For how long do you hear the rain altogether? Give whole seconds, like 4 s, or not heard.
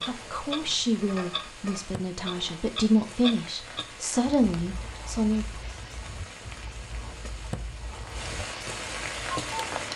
10 s.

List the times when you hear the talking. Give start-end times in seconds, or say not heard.
0.1-5.6.